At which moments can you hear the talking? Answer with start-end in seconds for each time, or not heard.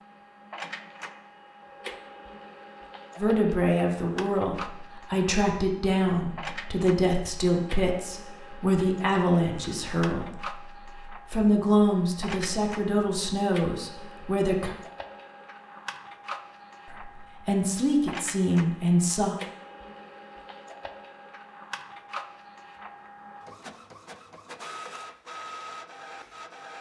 3.1-14.8, 16.9-19.4.